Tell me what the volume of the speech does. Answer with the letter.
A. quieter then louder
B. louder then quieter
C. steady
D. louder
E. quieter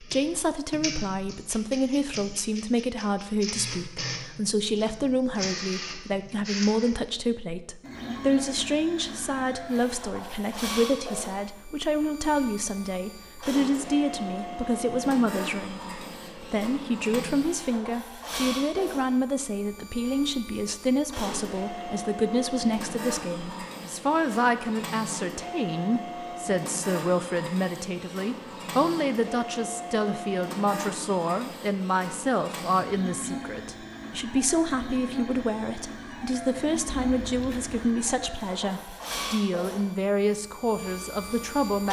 C.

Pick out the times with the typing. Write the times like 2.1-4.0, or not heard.
not heard.